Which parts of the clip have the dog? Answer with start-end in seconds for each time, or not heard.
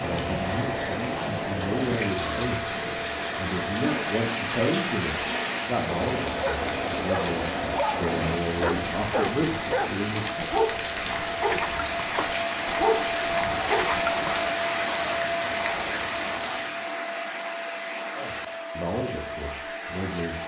5.8-14.4.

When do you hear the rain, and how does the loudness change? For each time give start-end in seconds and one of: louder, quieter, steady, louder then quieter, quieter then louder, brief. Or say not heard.
0.0-16.9 steady.